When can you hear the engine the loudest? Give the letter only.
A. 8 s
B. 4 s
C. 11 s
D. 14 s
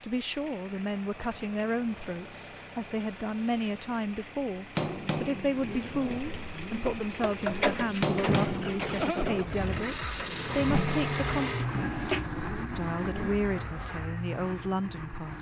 C.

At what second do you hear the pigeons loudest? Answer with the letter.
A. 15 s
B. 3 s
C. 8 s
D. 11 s
C.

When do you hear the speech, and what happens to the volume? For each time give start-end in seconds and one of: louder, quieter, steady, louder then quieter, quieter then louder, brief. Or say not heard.
0.0-15.3 steady.